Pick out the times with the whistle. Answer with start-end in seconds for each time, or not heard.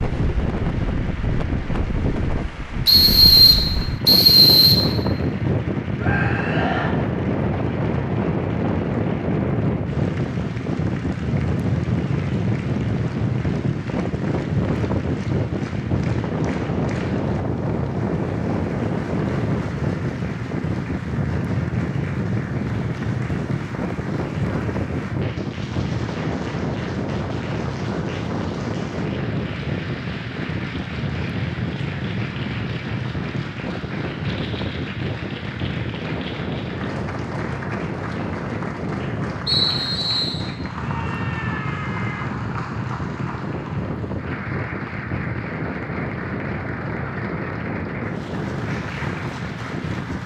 2.9-4.8, 39.5-40.4.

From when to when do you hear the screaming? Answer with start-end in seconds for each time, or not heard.
6.0-7.0, 40.8-42.4.